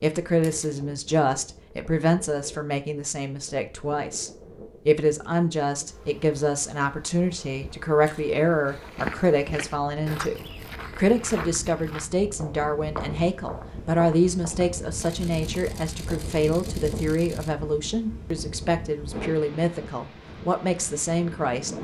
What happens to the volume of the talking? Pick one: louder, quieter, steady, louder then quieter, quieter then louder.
steady.